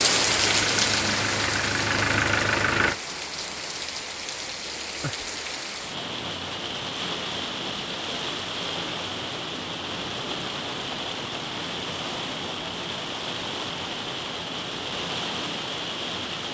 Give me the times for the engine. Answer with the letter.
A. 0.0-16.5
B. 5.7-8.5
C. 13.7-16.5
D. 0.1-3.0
D.